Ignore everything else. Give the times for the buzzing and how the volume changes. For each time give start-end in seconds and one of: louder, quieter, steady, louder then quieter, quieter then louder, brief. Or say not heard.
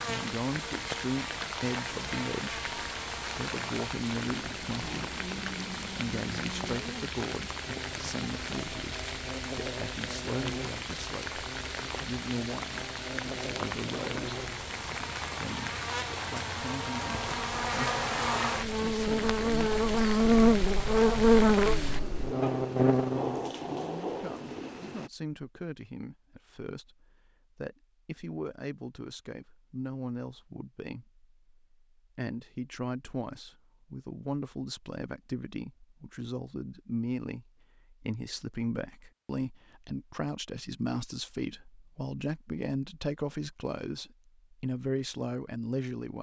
0.0-23.4 louder.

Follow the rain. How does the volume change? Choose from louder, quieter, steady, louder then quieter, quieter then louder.
steady.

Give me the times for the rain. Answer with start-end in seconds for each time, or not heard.
0.0-25.1.